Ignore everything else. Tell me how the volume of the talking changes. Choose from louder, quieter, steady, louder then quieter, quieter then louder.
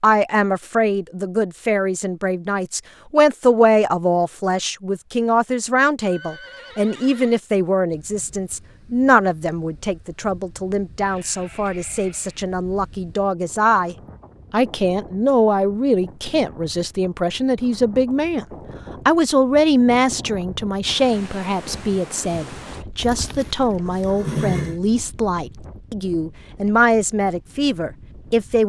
steady.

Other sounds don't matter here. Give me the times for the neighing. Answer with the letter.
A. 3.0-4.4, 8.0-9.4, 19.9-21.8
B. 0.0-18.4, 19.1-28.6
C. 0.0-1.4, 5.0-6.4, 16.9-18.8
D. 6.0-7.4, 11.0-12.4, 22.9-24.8
D.